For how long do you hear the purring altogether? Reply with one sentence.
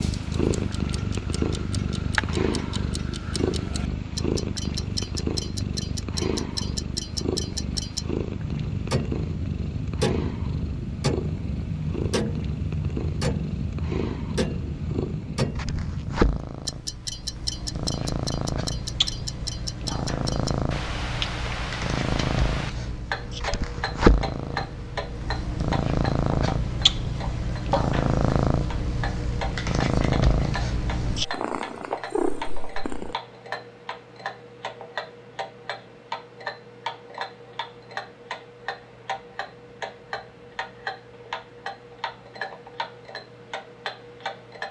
The purring can be heard for 33 seconds in total.